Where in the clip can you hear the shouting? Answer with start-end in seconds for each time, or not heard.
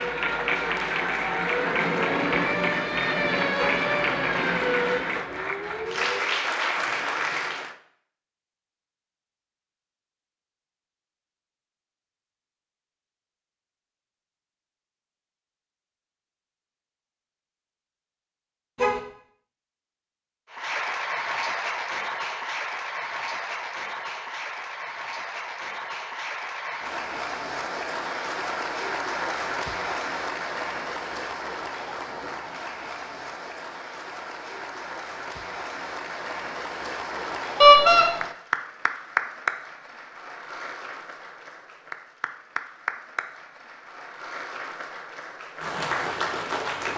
not heard.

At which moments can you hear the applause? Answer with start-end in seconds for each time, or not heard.
0.0-7.8, 20.5-46.9.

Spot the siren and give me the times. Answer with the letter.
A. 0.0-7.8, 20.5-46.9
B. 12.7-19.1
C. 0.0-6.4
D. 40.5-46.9
C.